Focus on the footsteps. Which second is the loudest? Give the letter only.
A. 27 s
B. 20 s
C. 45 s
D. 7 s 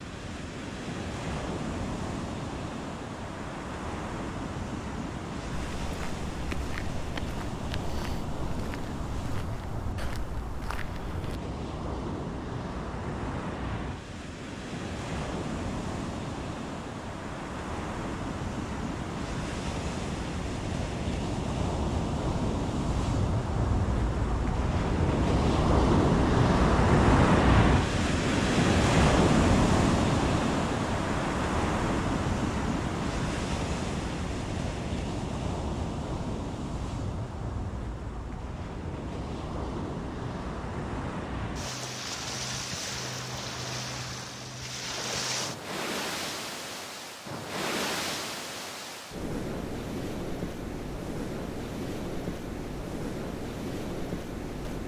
D.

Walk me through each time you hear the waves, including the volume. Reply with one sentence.
The waves can be heard from 0.0 to 54.8 s, getting louder then quieter.